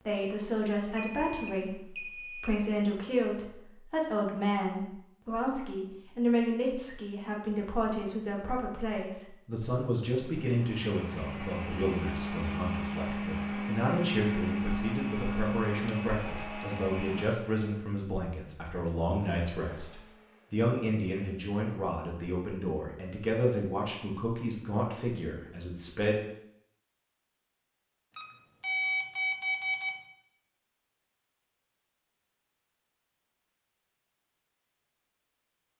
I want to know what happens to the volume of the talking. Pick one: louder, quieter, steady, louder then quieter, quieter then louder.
steady.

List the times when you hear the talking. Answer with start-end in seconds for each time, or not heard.
0.1-26.2.